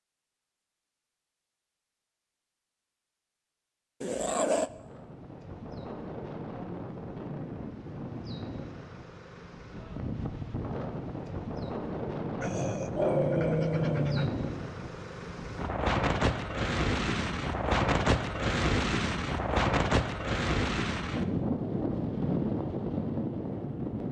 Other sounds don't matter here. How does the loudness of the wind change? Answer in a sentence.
The volume of the wind goes up.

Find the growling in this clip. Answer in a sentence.
You can hear the growling from 4.0 to 4.7 s and from 12.4 to 14.3 s.